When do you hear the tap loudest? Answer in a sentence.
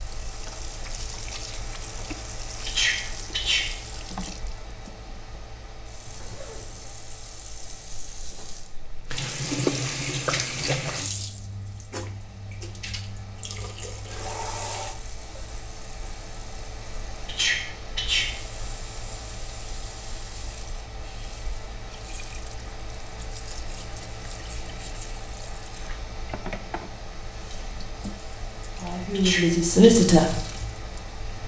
The volume of the tap peaks at 10 seconds.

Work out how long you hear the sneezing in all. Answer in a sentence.
You can hear the sneezing for 3 seconds altogether.